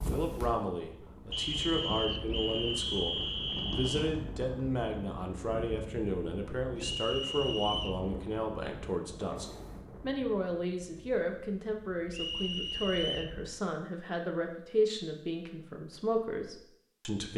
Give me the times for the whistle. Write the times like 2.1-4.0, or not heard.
1.3-4.1, 6.8-8.0, 12.1-13.3.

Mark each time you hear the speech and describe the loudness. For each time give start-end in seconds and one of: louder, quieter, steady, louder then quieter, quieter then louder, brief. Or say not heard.
0.1-17.3 steady.